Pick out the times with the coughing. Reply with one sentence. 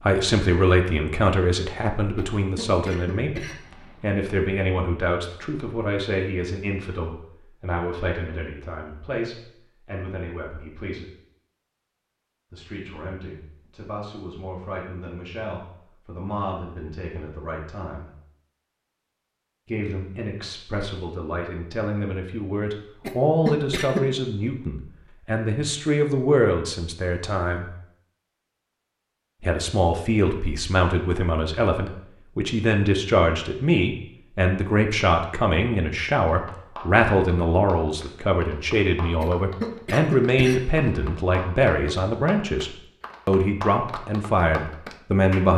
The coughing can be heard from 2.1 to 4.0 s, from 23.0 to 24.0 s and from 39.2 to 40.9 s.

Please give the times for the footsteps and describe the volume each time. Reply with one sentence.
You can't hear the footsteps here.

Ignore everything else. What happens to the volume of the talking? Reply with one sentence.
The loudness of the talking goes down, then up.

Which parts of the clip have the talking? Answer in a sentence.
The talking can be heard from 0.0 to 11.1 s, from 12.5 to 18.1 s, from 19.6 to 27.6 s and from 29.4 to 45.5 s.